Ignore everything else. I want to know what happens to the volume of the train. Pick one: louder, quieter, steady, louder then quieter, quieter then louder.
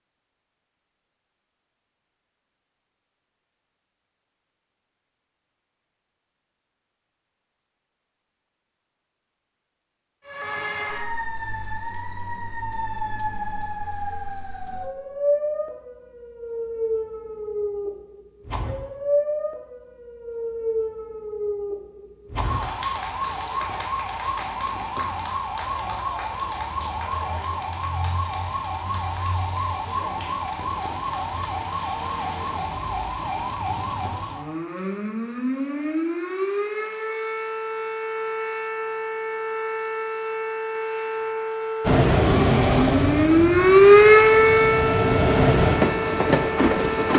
quieter then louder.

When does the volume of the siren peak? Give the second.
44 s.